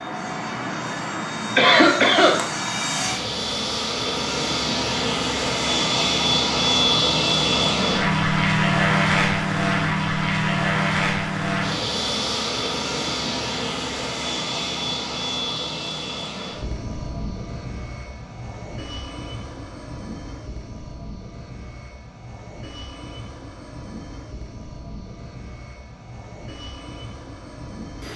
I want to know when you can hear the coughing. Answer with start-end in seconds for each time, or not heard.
1.6-2.4.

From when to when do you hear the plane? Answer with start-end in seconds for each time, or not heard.
0.0-28.1.